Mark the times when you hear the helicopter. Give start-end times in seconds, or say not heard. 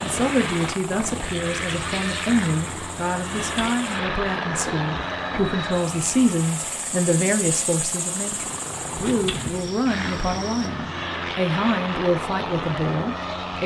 0.0-13.6.